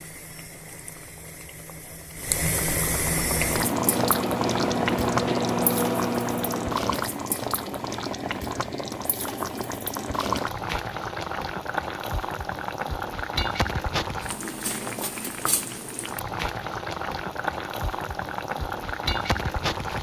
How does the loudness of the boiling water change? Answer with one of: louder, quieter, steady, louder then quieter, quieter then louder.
steady.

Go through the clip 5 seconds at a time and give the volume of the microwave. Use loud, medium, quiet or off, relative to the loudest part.
loud, loud, off, off.